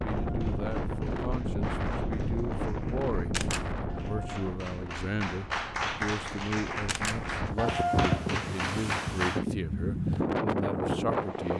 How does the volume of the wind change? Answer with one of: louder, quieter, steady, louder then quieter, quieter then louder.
quieter then louder.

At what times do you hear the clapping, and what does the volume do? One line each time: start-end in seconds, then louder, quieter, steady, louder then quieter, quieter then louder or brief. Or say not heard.
0.1-9.4 louder.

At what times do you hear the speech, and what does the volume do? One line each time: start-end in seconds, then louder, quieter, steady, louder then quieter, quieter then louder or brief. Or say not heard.
0.0-11.5 steady.